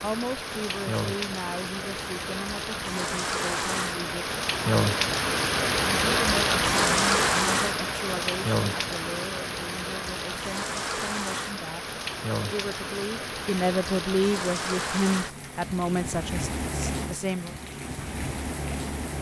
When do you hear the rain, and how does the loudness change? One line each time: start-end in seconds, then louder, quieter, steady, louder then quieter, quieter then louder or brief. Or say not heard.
0.0-19.1 louder then quieter.